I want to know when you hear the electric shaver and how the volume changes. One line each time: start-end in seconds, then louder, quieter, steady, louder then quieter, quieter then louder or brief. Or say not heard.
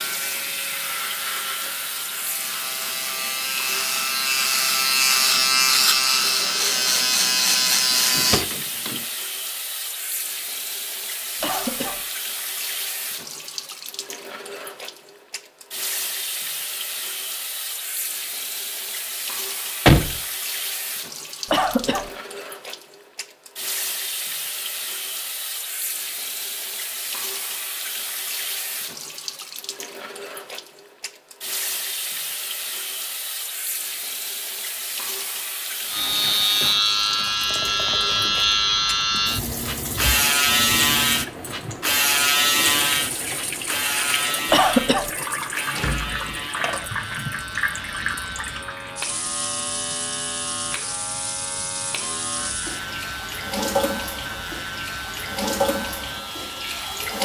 0.0-8.4 louder
35.9-57.2 quieter.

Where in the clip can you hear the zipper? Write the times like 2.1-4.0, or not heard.
not heard.